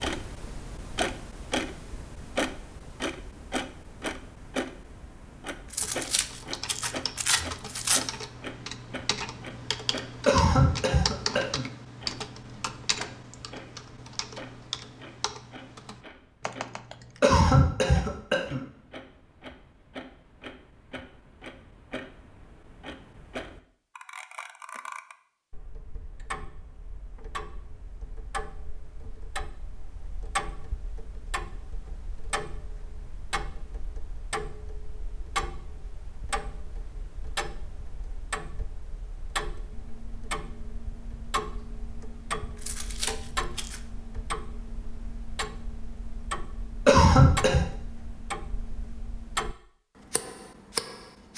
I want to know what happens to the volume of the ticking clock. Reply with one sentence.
The volume of the ticking clock goes down, then up.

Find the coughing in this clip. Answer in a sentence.
The coughing can be heard from 10.2 to 11.7 s, from 17.2 to 18.6 s and from 46.9 to 47.6 s.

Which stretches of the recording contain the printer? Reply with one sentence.
The printer can't be heard in this clip.